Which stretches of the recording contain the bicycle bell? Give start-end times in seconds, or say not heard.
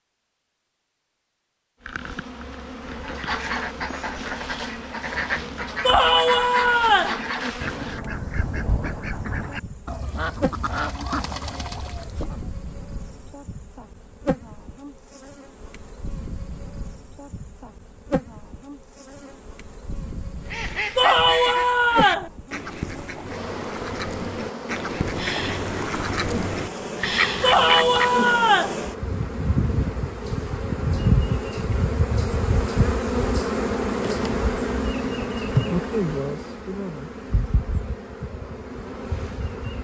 not heard.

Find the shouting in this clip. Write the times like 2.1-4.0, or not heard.
5.8-7.2, 20.9-22.3, 27.4-28.8.